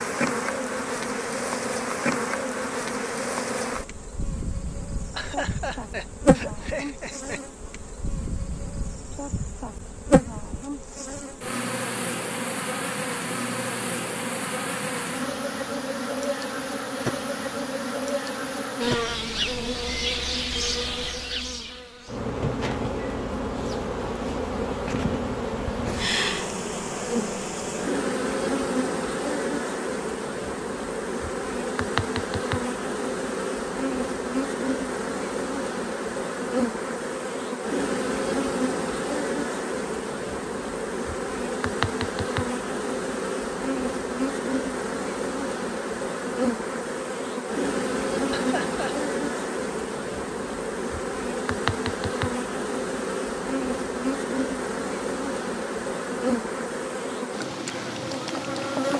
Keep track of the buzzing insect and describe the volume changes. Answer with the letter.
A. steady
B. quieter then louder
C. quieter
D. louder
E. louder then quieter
A.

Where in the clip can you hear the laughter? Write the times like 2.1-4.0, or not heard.
5.1-7.4, 48.3-49.0.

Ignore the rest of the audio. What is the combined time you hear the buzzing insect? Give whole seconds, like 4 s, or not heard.
59 s.